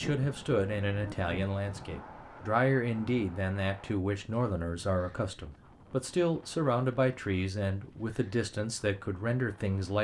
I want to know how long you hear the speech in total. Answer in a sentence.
The speech can be heard for 10 seconds in total.